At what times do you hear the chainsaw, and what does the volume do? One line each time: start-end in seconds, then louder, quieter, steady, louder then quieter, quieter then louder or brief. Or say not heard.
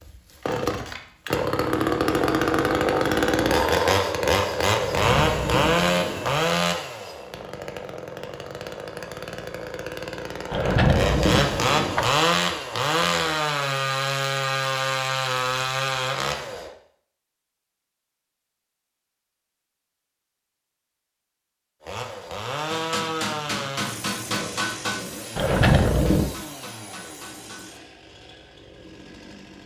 0.0-16.7 quieter then louder
21.8-29.6 quieter.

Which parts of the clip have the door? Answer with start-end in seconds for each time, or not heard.
4.8-6.4, 10.5-12.1, 25.4-26.3.